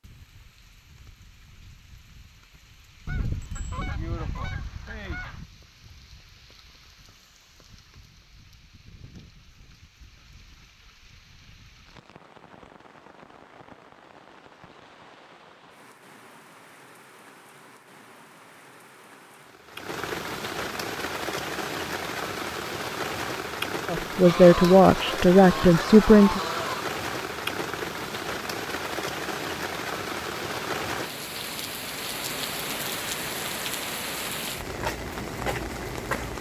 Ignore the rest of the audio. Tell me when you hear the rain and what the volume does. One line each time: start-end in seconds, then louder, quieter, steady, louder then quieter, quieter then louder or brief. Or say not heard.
0.0-36.3 louder.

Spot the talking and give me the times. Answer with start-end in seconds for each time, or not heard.
23.9-26.4.